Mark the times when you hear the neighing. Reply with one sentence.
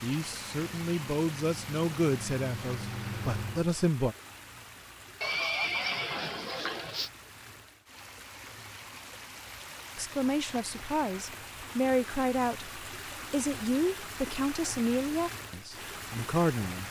The neighing can be heard from 5.2 to 7.1 s.